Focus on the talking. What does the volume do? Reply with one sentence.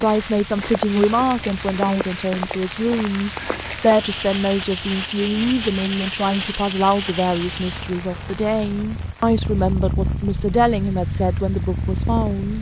The loudness of the talking stays about the same.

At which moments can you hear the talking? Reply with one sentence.
The talking can be heard from 0.0 to 12.5 s.